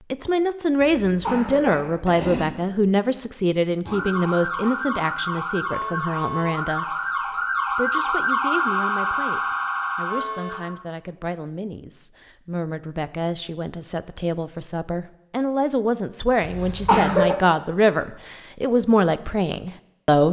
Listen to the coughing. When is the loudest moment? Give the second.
17 s.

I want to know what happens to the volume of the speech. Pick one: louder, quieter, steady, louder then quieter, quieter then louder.
quieter then louder.